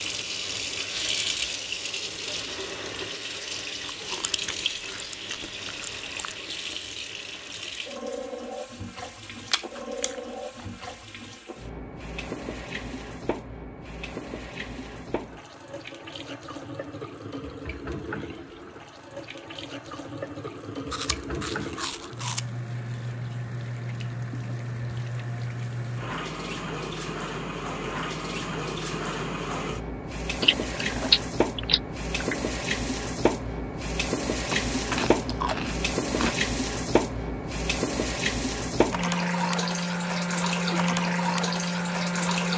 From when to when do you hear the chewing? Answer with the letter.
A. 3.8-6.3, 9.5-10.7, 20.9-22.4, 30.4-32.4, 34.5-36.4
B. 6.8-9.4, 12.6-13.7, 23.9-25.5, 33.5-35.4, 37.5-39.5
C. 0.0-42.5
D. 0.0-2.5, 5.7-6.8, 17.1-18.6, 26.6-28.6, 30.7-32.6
A.